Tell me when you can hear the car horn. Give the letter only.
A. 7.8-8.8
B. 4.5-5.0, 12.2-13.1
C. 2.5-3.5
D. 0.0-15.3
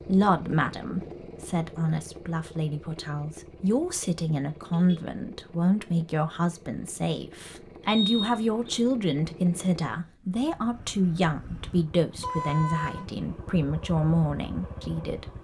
B.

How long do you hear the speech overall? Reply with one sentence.
You can hear the speech for 15 seconds altogether.